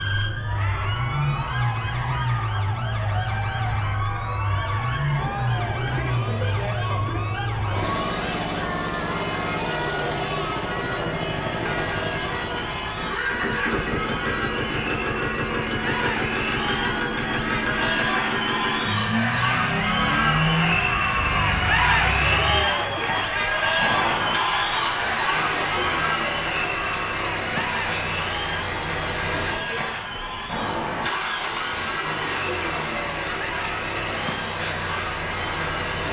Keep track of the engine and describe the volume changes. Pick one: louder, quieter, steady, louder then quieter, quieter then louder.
steady.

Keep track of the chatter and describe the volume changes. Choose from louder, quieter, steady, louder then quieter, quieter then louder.
louder then quieter.